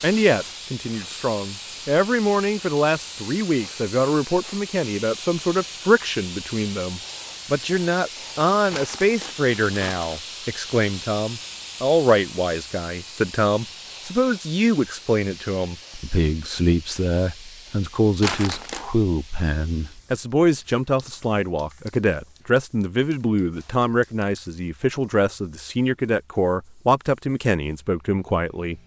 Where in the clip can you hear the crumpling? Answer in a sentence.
The crumpling can be heard from 8.7 to 10.2 s and from 18.2 to 18.9 s.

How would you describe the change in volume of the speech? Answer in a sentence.
The loudness of the speech stays about the same.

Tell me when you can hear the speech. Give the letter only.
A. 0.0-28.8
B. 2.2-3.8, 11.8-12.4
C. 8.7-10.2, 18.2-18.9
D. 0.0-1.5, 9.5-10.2
A.